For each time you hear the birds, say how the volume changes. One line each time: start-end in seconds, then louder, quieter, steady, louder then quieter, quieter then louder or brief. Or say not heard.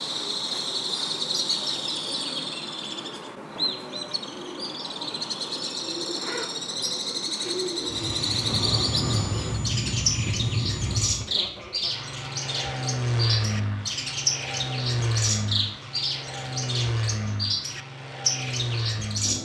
0.0-19.4 steady.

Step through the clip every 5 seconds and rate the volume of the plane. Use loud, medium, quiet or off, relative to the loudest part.
off, loud, loud, loud.